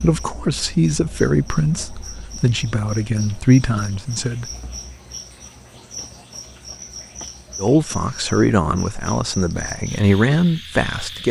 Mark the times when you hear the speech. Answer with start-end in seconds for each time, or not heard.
0.0-4.5, 7.6-11.2.